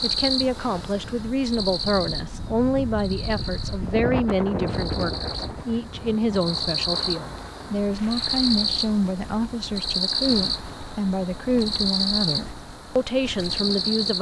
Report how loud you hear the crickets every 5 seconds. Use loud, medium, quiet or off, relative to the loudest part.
medium, loud, loud.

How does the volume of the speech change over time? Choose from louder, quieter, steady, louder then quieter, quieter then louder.
steady.